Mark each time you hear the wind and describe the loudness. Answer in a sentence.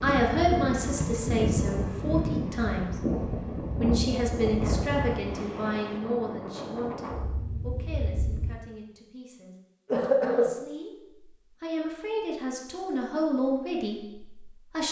The wind can be heard from 0.0 to 8.6 s, getting quieter.